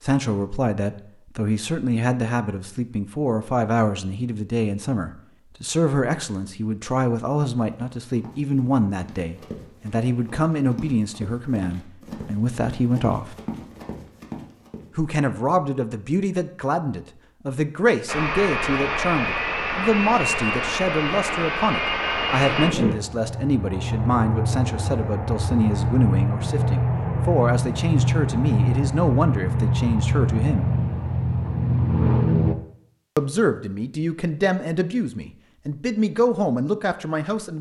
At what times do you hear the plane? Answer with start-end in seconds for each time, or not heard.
18.1-32.5.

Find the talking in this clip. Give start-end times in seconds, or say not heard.
0.0-13.3, 14.9-30.6, 33.1-37.5.